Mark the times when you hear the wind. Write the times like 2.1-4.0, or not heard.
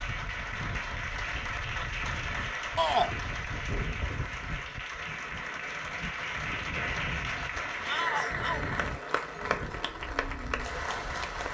0.0-11.4.